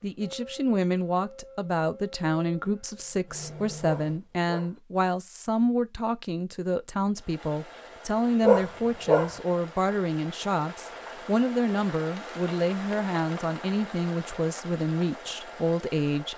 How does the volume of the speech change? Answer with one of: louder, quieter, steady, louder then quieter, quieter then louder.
steady.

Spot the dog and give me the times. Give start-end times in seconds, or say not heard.
3.9-4.8, 8.4-9.3.